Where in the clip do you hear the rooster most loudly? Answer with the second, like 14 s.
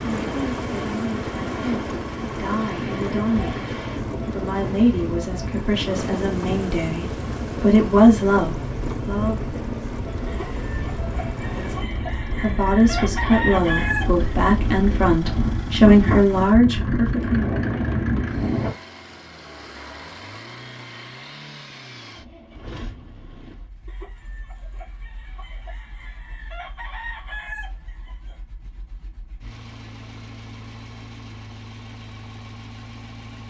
14 s.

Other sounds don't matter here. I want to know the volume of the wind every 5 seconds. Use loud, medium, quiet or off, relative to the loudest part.
medium, medium, medium, loud, off, off, off.